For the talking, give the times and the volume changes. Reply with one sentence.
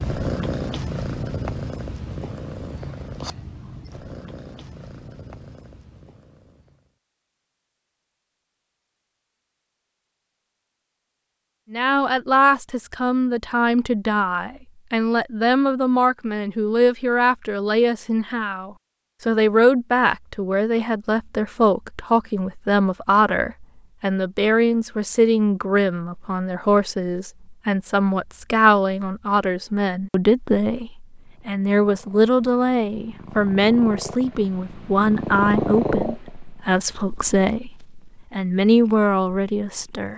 You can hear the talking from 11.7 to 40.1 s, at a steady volume.